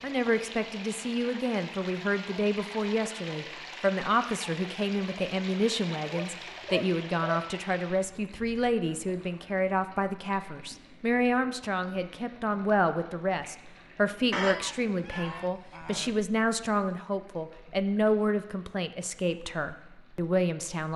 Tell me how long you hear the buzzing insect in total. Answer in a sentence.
You can't hear the buzzing insect here.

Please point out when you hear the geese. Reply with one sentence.
The geese can be heard from 6.0 to 7.5 s and from 14.3 to 16.2 s.